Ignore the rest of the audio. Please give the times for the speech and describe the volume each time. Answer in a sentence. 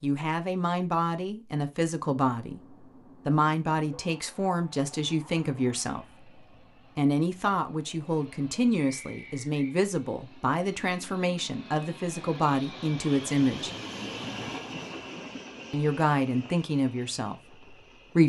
The speech can be heard from 0.0 to 13.7 s, at a steady volume; and briefly from 15.7 to 18.2 s.